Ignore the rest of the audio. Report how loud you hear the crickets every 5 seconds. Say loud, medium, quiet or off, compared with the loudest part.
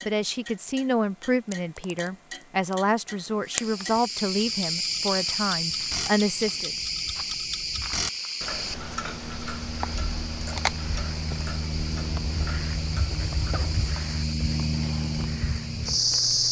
medium, medium, medium, loud.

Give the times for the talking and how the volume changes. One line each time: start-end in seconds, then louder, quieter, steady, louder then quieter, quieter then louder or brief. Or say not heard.
0.1-6.8 steady.